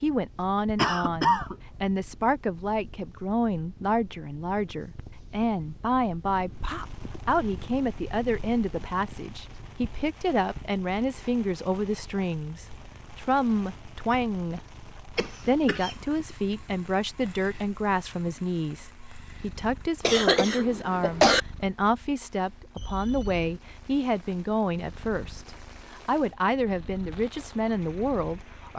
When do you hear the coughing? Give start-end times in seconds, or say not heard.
0.8-1.6, 15.2-15.9, 20.0-21.4.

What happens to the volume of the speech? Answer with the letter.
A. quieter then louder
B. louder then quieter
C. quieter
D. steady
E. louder
D.